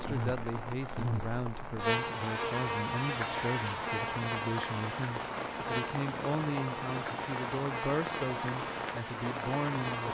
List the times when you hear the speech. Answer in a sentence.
You can hear the speech from 0.0 to 10.1 s.